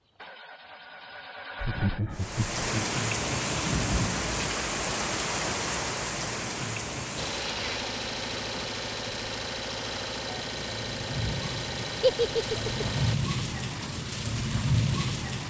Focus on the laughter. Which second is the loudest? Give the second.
12 s.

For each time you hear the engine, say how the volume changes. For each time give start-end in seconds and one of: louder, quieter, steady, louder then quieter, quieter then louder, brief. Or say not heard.
0.0-2.0 brief
7.2-13.2 steady.